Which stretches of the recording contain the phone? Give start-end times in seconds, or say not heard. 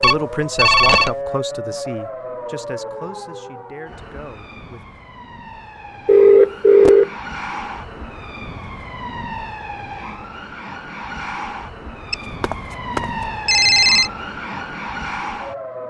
0.0-1.1, 6.0-7.1, 12.1-14.1.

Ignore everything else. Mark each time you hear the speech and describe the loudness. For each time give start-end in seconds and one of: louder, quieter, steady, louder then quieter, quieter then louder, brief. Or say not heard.
0.0-4.8 quieter.